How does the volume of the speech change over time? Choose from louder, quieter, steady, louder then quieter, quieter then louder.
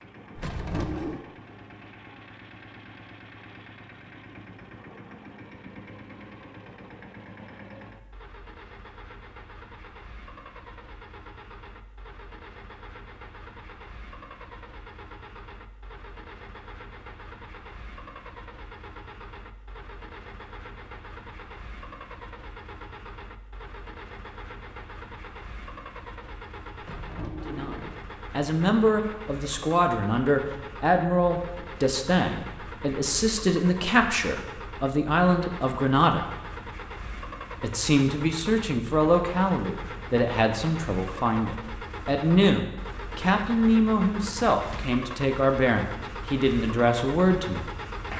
steady.